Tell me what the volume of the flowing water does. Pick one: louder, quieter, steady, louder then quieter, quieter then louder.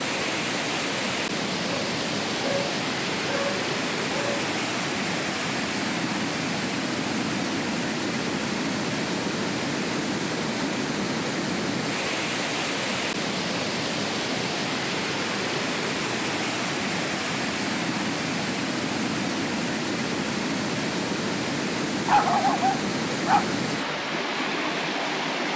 steady.